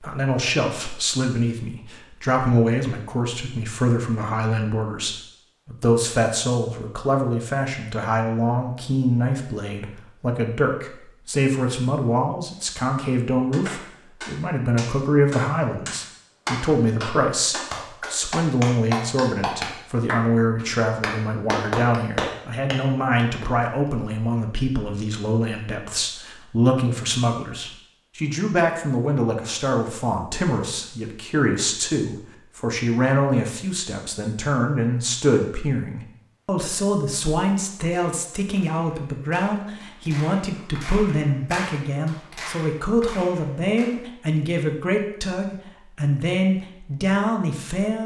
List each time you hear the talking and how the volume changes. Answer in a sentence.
The talking can be heard from 0.0 to 48.0 s, at a steady volume.